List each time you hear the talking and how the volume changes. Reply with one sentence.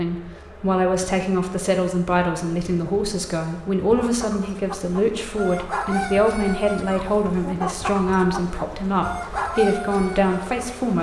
The talking can be heard from 0.0 to 10.9 s, at a steady volume.